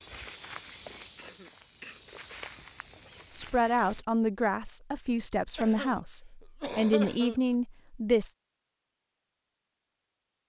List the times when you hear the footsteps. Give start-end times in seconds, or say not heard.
0.0-4.0.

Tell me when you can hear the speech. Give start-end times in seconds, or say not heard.
3.3-8.3.